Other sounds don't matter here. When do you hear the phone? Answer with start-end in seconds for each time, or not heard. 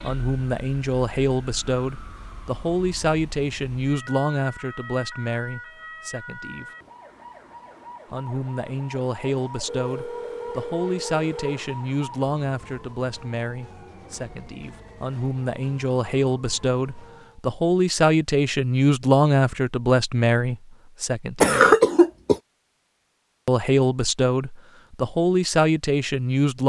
9.7-11.7.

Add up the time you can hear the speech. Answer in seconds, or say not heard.
23 s.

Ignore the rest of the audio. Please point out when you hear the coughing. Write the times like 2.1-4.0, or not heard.
21.4-22.4.